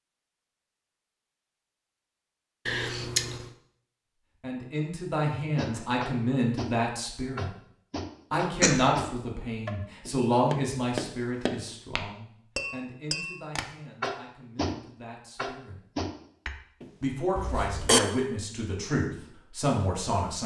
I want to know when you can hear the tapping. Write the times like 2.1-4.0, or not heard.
5.5-16.9.